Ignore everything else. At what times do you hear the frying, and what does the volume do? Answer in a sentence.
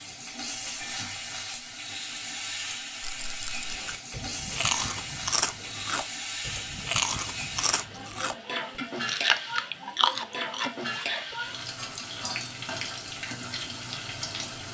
The frying can be heard from 0.0 to 14.7 s, at a steady volume.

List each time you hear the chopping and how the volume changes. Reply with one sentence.
You can't hear the chopping here.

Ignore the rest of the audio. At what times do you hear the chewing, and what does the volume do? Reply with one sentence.
You can hear the chewing from 3.6 to 11.3 s, getting quieter then louder.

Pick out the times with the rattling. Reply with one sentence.
The rattling can be heard from 3.0 to 3.7 s.